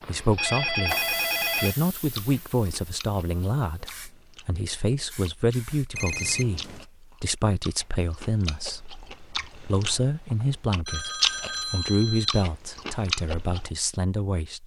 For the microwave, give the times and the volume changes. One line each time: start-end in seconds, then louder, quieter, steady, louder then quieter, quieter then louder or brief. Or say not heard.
not heard.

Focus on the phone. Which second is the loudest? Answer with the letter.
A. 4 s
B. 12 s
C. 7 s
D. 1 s
D.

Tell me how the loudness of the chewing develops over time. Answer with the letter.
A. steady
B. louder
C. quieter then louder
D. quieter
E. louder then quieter
B.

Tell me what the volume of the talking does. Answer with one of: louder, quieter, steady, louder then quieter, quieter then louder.
steady.